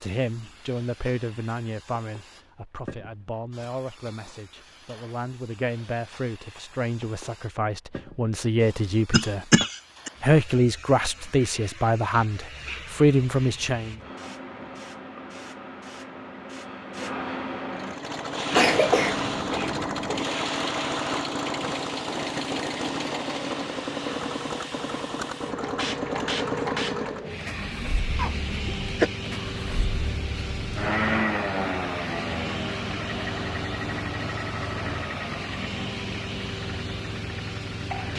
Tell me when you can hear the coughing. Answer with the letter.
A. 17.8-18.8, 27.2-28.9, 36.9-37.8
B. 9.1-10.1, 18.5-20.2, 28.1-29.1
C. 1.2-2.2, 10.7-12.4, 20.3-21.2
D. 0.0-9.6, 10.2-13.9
B.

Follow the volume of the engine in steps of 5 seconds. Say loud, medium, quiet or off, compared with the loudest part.
off, off, off, loud, loud, loud, loud, medium.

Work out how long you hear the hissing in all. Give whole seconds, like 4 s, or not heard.
38 s.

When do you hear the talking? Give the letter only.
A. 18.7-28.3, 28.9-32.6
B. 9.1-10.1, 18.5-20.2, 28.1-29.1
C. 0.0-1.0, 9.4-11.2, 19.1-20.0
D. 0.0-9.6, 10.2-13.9
D.